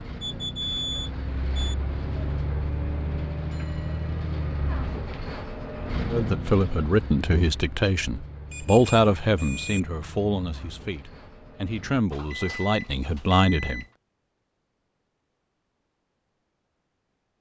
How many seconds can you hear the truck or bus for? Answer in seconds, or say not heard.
12 s.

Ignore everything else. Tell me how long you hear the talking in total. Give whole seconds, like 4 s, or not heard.
8 s.